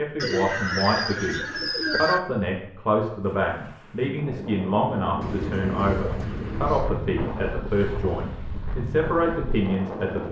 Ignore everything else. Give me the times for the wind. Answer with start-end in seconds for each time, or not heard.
3.2-10.2.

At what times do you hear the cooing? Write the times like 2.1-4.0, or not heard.
0.1-2.2, 5.2-6.9.